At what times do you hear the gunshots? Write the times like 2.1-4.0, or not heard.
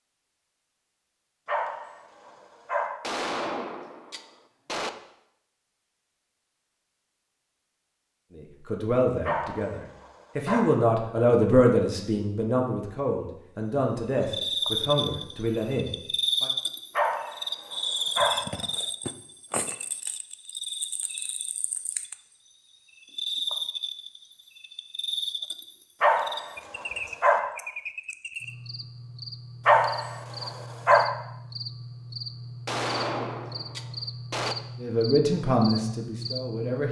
3.0-4.9, 32.6-34.5.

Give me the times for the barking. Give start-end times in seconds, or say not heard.
1.4-2.9, 9.2-10.7, 16.9-18.4, 26.0-27.4, 29.6-31.1.